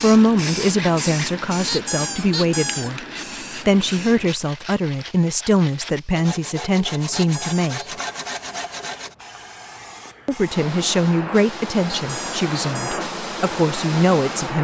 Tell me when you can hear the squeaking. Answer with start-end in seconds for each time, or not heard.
1.6-2.9, 7.1-7.7, 11.9-13.0.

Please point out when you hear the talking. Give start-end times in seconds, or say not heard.
0.0-3.0, 3.6-7.8, 10.2-14.6.